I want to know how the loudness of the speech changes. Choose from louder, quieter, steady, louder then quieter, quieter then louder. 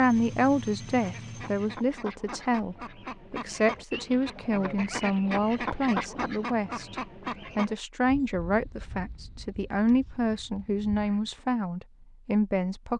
steady.